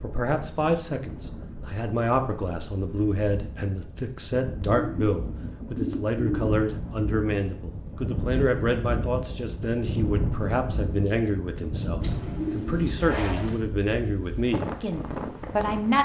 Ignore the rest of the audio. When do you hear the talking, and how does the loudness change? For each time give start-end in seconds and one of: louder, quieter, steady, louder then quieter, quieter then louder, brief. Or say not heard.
0.0-16.0 steady.